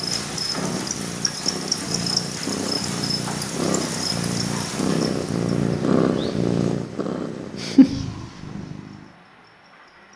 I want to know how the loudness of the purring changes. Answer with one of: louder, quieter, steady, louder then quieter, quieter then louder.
louder.